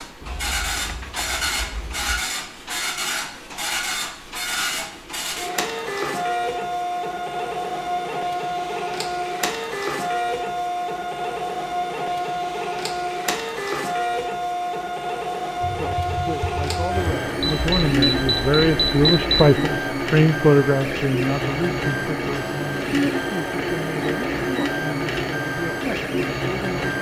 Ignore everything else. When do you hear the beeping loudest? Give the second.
19 s.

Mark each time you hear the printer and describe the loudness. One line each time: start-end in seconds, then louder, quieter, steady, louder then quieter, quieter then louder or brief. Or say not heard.
0.0-26.9 steady.